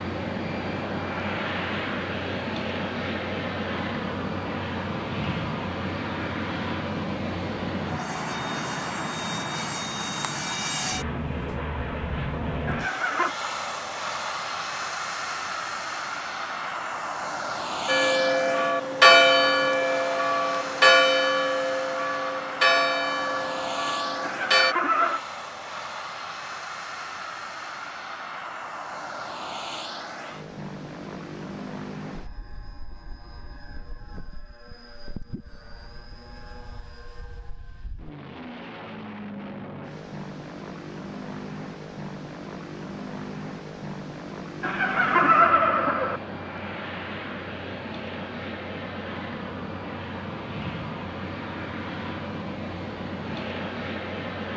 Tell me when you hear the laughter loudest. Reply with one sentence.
The volume of the laughter peaks at 45 seconds.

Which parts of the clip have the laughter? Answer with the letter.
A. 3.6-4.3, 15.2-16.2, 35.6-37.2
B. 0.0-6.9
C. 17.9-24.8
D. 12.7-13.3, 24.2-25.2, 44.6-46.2
D.